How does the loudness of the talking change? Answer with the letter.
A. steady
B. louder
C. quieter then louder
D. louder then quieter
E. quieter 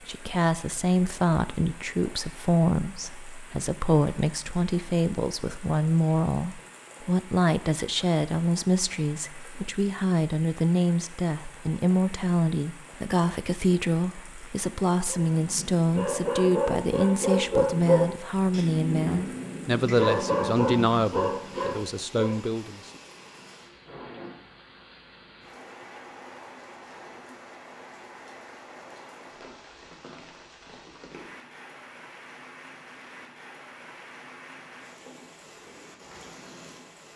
A.